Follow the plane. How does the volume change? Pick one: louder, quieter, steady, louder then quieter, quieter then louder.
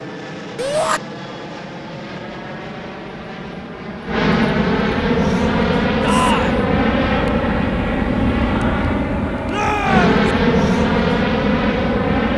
louder.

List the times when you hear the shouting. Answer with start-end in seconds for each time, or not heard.
0.6-1.0, 6.0-6.7, 9.4-10.2.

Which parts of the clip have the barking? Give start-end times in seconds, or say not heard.
not heard.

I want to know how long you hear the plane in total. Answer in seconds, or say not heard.
12 s.